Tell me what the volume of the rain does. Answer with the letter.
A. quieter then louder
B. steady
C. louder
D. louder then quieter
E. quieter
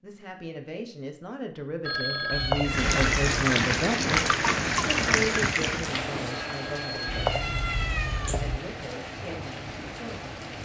E.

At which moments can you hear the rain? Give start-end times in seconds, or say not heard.
2.6-10.6.